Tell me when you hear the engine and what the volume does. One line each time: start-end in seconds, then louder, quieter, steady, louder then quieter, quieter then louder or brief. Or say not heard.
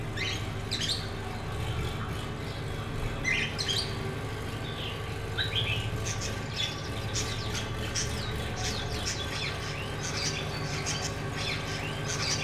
0.0-12.3 steady.